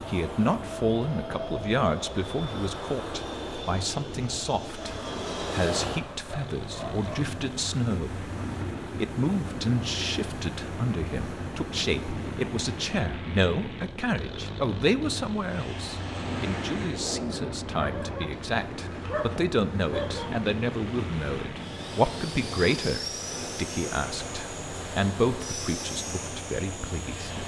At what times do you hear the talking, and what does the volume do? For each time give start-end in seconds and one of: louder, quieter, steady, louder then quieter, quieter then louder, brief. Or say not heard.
0.0-27.4 steady.